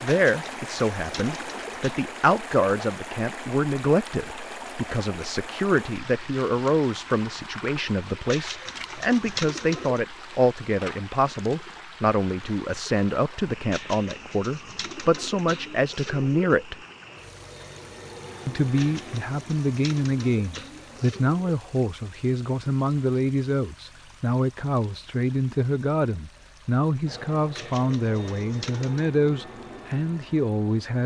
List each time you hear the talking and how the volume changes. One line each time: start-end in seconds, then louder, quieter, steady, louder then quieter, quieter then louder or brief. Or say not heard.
0.0-16.8 steady
18.4-31.0 steady.